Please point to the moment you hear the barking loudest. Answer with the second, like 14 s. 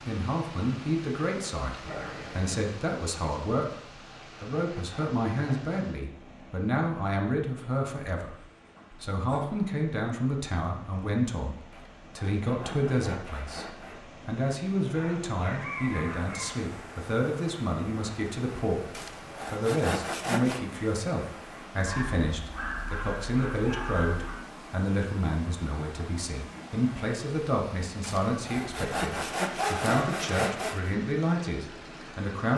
30 s.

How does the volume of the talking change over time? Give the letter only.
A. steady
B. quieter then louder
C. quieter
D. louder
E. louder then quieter
A.